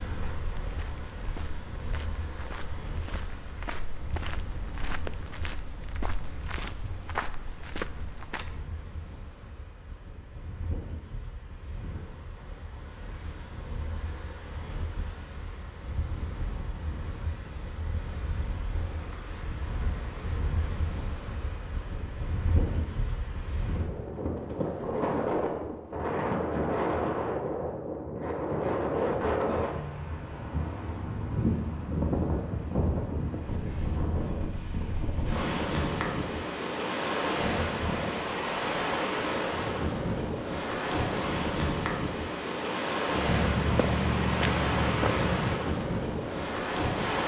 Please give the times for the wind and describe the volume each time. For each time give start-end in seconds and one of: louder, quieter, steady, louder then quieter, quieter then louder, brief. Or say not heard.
0.0-47.2 louder.